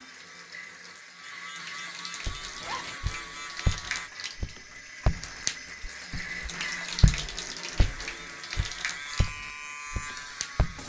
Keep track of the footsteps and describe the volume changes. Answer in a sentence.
The volume of the footsteps goes down.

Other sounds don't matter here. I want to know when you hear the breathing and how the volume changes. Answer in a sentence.
The breathing can't be heard in this clip.